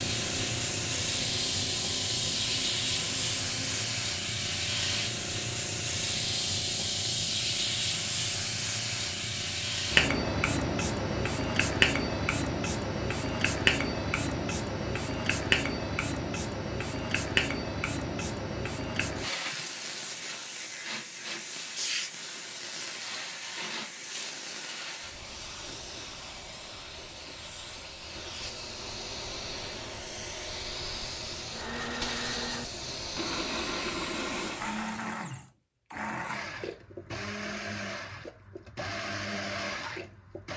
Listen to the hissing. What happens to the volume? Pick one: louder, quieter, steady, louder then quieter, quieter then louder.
quieter.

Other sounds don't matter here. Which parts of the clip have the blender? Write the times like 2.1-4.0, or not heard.
0.0-4.0, 31.5-40.5.